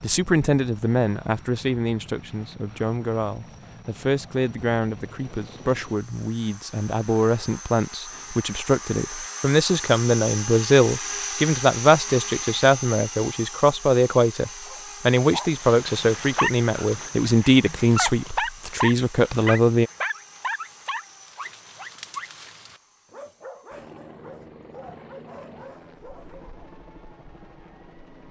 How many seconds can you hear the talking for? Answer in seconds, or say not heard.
20 s.